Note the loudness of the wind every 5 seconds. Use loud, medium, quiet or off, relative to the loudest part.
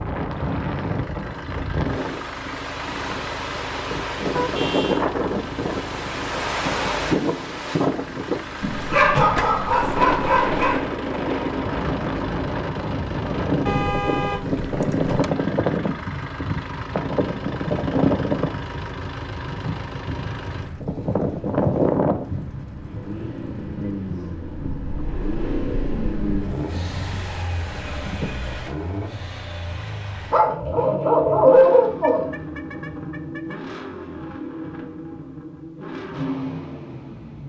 loud, loud, loud, loud, loud, medium, off, off.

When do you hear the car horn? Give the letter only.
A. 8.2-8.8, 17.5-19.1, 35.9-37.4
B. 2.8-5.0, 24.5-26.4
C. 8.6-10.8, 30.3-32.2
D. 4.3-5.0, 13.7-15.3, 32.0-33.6
D.